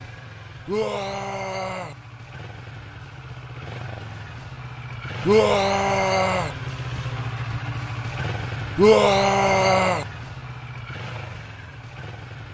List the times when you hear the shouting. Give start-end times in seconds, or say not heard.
0.7-1.9, 5.2-6.5, 8.8-10.1.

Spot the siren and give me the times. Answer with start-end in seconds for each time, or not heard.
not heard.